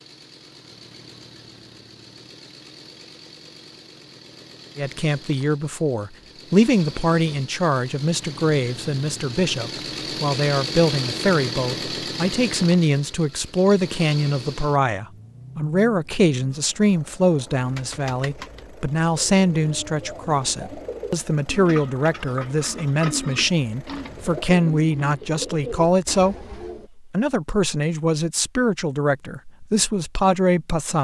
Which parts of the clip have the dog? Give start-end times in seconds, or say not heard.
not heard.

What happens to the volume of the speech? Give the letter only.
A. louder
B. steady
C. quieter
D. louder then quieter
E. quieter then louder
B.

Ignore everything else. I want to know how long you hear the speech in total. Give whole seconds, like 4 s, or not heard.
26 s.